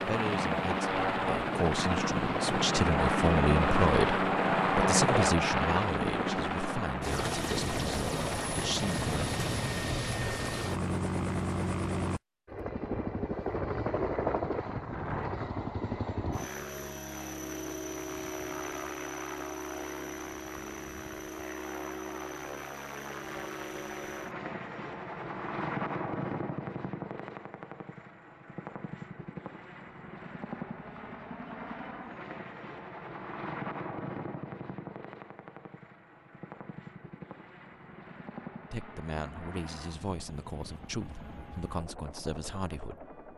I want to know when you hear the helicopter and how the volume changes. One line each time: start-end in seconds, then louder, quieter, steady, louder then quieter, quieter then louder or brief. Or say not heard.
0.0-43.3 quieter.